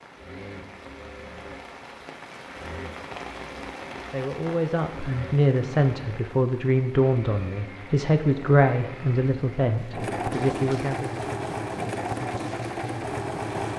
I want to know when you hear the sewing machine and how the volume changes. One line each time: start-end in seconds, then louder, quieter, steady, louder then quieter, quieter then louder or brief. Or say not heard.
0.1-13.7 louder.